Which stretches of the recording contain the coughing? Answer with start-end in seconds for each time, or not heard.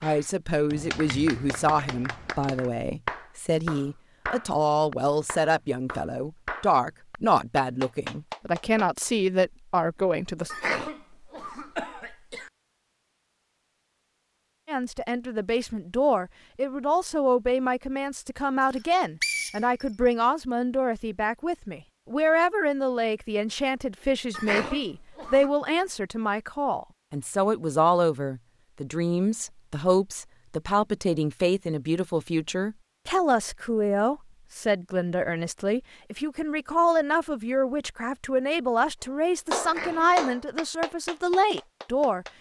10.5-12.5, 24.3-25.5, 39.6-40.1.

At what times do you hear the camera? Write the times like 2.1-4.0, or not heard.
not heard.